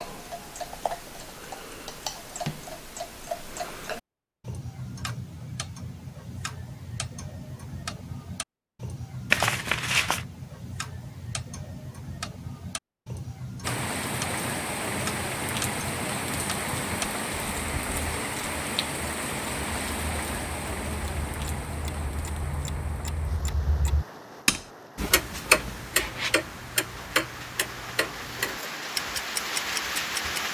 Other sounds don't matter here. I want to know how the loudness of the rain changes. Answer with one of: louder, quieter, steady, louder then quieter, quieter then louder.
quieter then louder.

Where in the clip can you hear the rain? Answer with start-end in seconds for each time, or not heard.
13.6-30.4.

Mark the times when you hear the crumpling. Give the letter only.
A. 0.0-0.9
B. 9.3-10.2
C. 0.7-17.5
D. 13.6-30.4
B.